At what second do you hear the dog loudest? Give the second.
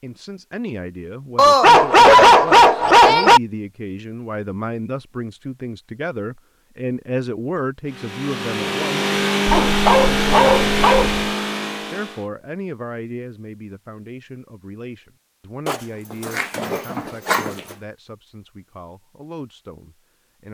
2 s.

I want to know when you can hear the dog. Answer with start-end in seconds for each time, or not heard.
1.4-3.4, 9.4-11.2, 15.7-17.6.